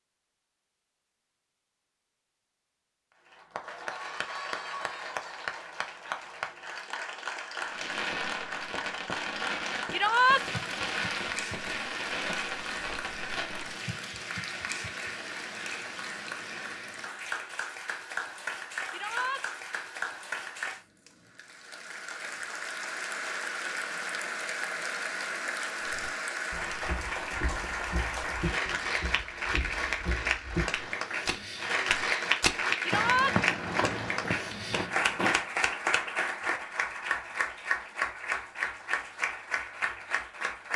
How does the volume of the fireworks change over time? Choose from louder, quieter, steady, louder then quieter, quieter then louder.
steady.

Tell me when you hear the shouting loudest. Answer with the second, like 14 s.
10 s.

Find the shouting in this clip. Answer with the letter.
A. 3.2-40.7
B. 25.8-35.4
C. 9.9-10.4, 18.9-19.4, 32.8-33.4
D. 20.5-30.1
C.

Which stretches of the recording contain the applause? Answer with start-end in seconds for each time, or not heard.
3.2-40.7.